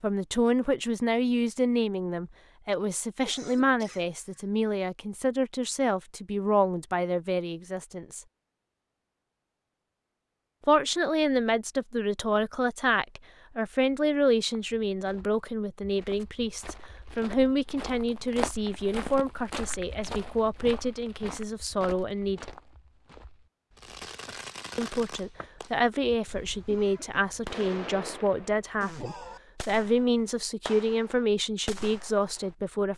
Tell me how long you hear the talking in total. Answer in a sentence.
You can hear the talking for 28 seconds altogether.